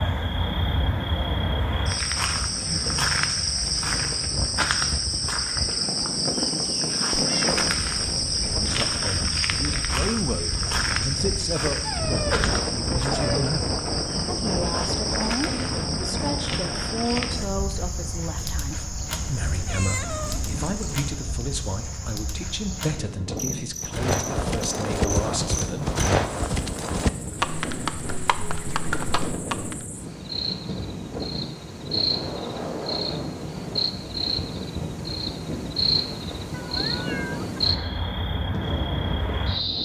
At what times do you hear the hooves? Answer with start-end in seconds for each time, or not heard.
23.8-29.9.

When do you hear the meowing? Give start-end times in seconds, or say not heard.
7.1-7.6, 19.1-21.1, 36.5-37.6.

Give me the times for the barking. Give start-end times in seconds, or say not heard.
11.8-13.4.